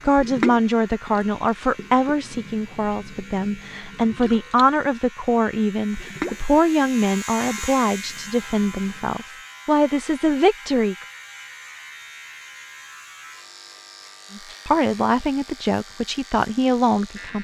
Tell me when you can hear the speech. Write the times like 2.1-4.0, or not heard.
0.0-10.9, 14.3-17.3.